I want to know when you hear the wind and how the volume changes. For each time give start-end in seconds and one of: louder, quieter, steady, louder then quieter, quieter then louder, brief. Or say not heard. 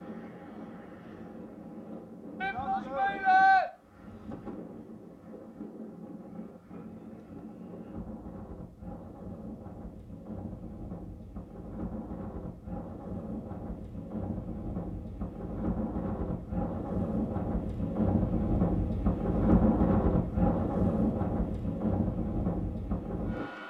0.0-23.6 louder.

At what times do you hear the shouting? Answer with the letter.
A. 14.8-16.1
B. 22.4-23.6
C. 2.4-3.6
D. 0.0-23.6
C.